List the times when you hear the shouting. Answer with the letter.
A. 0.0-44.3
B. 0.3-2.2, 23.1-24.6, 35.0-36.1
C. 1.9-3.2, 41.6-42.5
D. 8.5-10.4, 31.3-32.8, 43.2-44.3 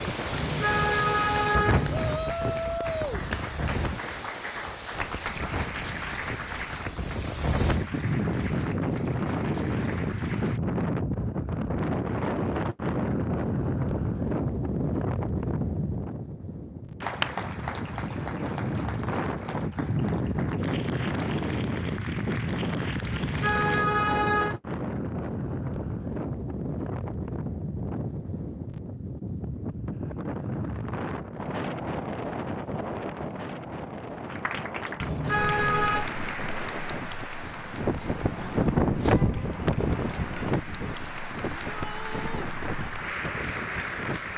C.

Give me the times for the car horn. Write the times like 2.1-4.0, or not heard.
0.3-2.2, 23.1-24.6, 35.0-36.1.